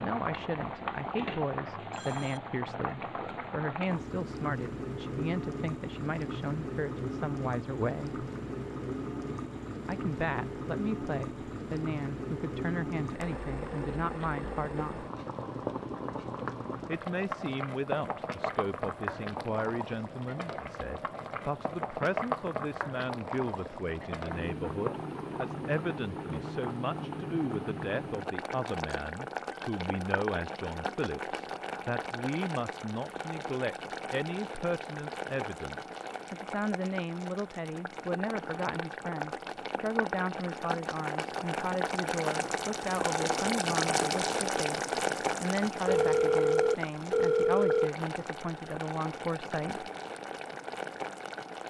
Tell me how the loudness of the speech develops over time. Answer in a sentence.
The volume of the speech stays about the same.